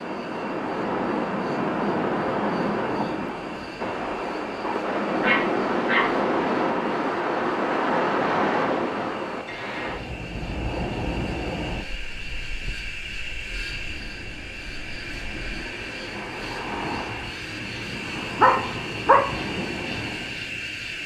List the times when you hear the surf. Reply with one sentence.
The surf can be heard from 0.0 to 21.0 s.